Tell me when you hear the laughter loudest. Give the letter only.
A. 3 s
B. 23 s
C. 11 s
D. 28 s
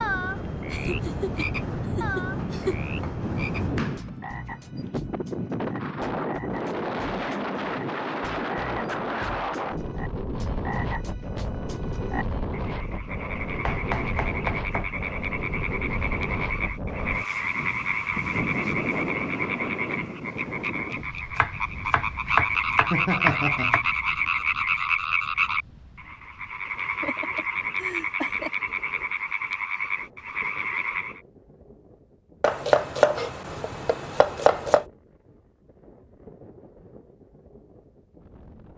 B.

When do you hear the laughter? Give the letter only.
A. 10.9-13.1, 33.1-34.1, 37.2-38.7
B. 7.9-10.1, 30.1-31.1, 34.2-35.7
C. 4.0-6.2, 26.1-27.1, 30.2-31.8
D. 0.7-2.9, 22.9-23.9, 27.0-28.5
D.